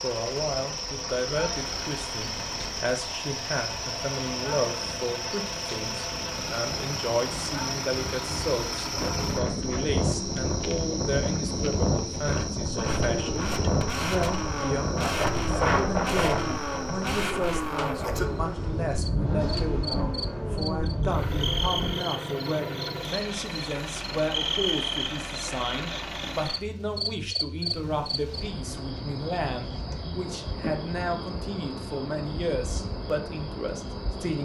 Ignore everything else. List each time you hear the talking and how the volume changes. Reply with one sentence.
The talking can be heard from 0.0 to 34.4 s, at a steady volume.